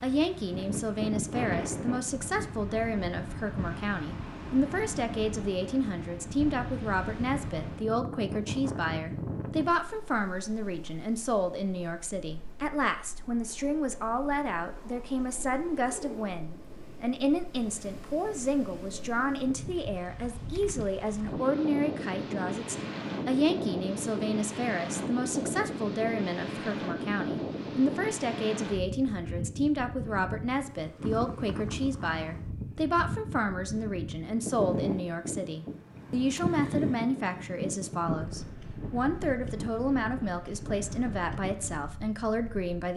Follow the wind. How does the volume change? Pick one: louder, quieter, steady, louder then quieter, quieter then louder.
quieter then louder.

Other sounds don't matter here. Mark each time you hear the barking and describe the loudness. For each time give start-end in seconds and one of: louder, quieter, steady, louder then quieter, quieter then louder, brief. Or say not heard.
not heard.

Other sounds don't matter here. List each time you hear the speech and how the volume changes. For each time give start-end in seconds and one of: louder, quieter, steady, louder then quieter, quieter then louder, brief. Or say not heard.
0.0-42.9 steady.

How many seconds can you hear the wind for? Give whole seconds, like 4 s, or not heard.
43 s.